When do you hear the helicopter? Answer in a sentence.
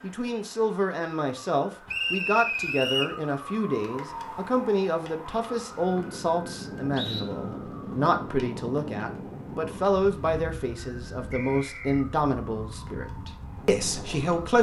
You can't hear the helicopter here.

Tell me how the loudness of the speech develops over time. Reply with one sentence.
The volume of the speech stays about the same.